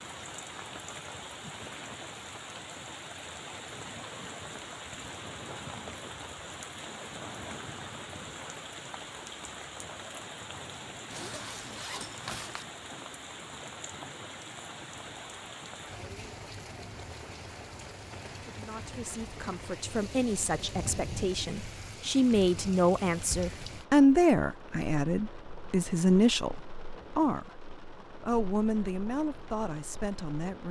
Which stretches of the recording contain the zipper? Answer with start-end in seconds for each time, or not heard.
11.1-12.7.